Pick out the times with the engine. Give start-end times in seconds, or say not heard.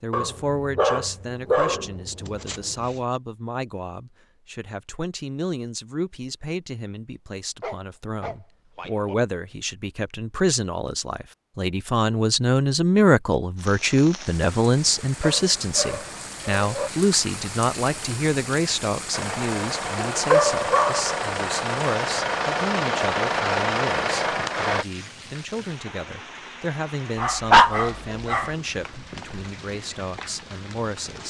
19.1-24.9.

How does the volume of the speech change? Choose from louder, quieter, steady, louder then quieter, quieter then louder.
louder then quieter.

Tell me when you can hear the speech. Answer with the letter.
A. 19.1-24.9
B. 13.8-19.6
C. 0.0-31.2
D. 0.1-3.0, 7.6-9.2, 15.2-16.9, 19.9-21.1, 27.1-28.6
C.